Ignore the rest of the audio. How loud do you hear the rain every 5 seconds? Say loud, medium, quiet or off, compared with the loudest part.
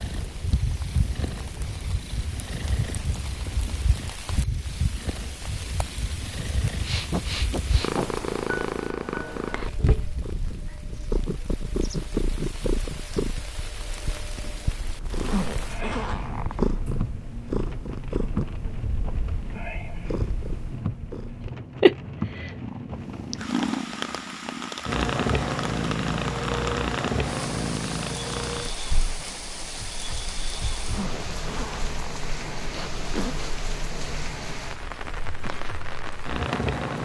medium, medium, medium, loud, loud, loud, loud, loud.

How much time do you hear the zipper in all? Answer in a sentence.
The zipper can be heard for 4 seconds in total.